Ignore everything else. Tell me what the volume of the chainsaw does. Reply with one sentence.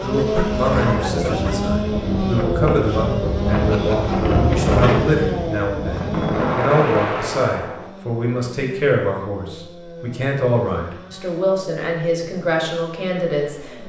The volume of the chainsaw goes down.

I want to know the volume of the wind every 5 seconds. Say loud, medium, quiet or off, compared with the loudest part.
loud, loud, off.